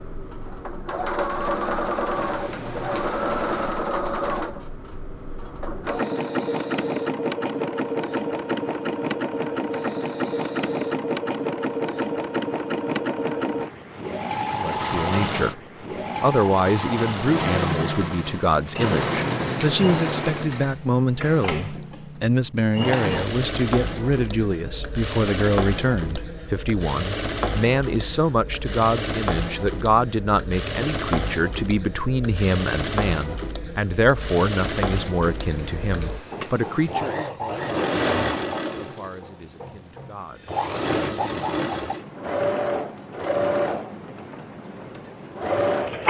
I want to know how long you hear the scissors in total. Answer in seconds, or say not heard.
5 s.